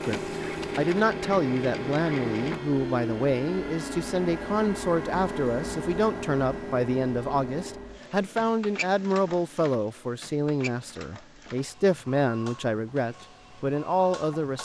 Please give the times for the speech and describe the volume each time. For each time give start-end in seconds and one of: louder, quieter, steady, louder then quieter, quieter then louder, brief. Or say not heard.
0.0-14.6 steady.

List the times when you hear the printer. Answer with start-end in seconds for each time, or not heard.
0.0-14.6.